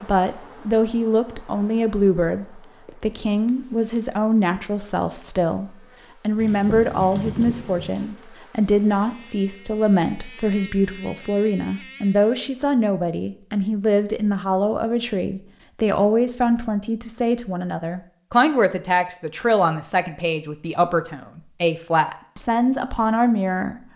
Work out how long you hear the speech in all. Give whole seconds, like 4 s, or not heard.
24 s.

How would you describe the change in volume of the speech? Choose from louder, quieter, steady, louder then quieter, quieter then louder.
steady.